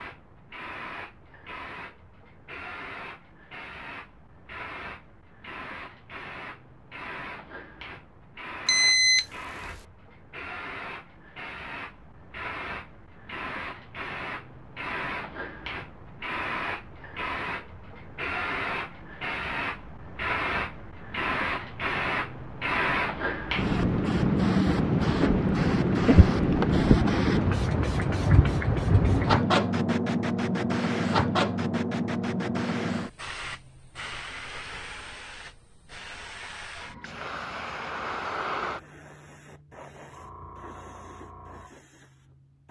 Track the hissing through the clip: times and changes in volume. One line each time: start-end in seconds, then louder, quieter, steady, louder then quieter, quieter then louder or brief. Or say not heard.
0.0-42.6 louder then quieter.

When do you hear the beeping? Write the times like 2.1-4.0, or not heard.
8.7-9.8.